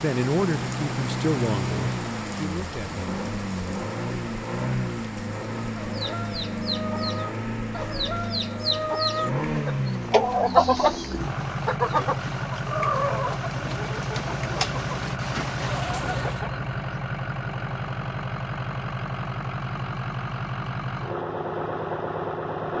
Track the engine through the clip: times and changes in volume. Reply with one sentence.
The engine can be heard from 0.0 to 22.7 s, at a steady volume.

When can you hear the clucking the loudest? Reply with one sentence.
The volume of the clucking peaks at 11 seconds.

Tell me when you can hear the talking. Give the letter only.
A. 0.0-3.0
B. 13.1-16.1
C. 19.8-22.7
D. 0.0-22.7
A.